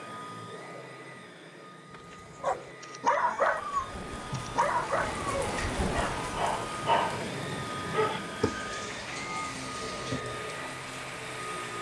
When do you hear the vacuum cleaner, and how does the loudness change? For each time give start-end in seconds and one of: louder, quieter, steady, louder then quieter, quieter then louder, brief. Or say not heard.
0.0-11.7 louder.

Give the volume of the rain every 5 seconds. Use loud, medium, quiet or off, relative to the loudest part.
medium, loud, medium.